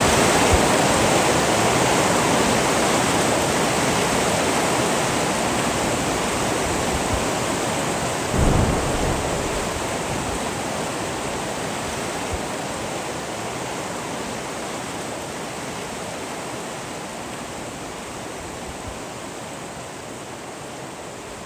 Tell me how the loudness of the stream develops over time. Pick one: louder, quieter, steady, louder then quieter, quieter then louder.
quieter.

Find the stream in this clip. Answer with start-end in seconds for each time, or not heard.
0.0-21.4.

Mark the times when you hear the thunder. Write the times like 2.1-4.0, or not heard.
8.3-9.5.